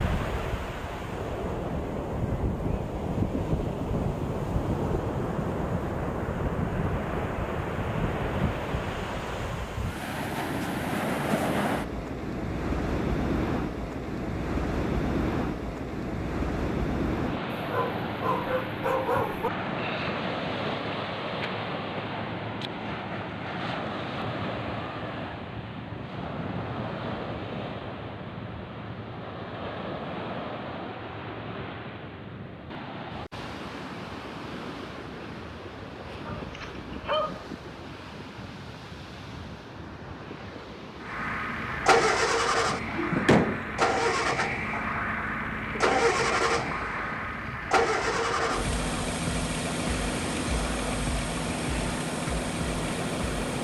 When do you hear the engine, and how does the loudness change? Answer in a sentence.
The engine can be heard from 41.0 to 53.6 s, getting quieter.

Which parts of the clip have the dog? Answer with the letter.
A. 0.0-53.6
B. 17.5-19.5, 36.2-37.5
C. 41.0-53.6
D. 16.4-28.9
B.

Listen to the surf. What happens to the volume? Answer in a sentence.
The loudness of the surf goes down.